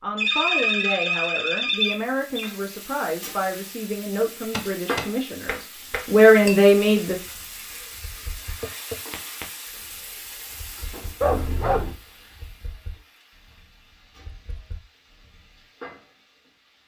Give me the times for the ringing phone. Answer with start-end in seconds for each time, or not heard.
0.1-2.5, 11.2-11.9.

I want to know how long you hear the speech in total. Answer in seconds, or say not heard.
7 s.